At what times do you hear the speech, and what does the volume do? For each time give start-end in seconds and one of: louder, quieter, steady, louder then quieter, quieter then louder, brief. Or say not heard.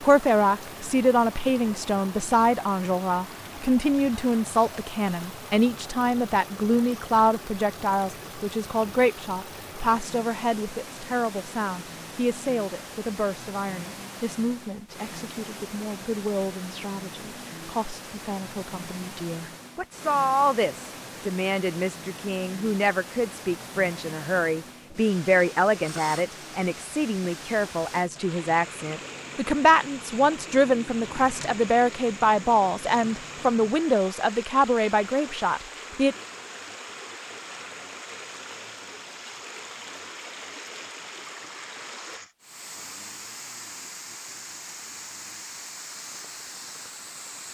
0.0-36.1 quieter then louder.